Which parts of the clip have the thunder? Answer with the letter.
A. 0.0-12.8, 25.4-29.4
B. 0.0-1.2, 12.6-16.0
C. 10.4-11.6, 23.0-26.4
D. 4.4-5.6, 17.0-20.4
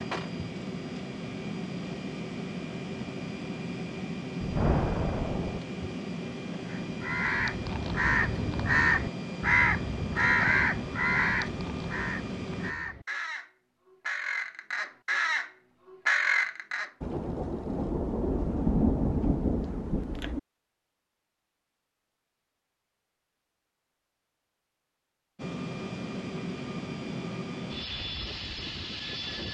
D.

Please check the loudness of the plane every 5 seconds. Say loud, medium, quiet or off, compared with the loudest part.
loud, loud, loud, off, off, loud.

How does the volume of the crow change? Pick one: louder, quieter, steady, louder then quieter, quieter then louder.
quieter then louder.